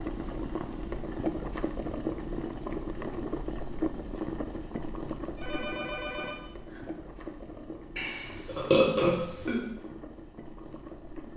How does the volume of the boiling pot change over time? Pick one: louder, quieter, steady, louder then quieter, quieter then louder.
quieter.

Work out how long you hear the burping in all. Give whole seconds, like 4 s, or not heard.
2 s.